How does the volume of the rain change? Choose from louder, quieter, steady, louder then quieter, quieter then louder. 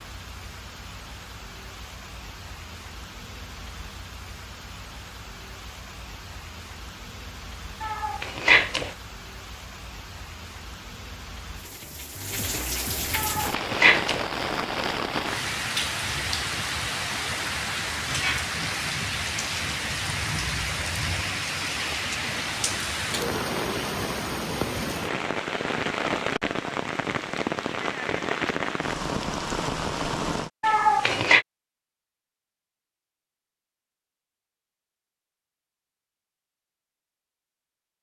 louder.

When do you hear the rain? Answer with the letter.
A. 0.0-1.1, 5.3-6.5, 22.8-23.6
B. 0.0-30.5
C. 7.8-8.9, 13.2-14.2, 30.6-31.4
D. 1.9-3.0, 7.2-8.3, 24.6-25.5
B.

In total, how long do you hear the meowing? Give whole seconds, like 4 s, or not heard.
3 s.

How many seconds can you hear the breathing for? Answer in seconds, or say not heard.
not heard.